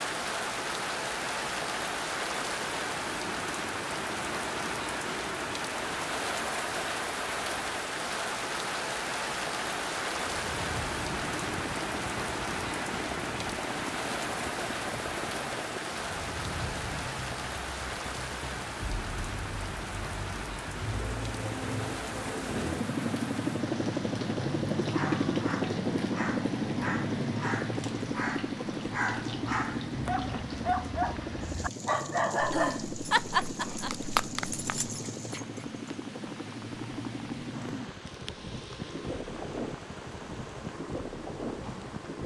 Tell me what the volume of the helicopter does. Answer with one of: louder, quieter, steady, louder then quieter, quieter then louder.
louder then quieter.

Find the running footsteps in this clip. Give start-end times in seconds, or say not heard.
not heard.